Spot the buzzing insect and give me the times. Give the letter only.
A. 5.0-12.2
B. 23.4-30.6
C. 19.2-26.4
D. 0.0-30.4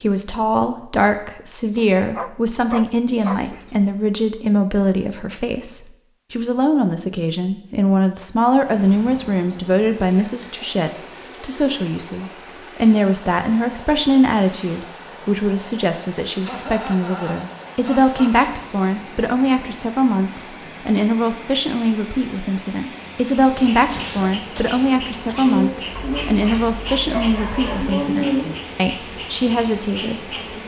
B.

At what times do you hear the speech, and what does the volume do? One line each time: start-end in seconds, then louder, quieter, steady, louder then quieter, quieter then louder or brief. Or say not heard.
0.0-30.4 steady.